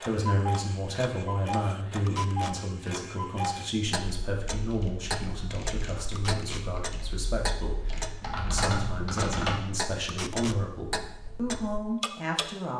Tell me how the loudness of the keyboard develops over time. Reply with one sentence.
The volume of the keyboard goes up.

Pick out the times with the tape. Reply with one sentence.
The tape can be heard from 2.0 to 2.5 s, from 6.2 to 6.7 s and from 10.1 to 10.6 s.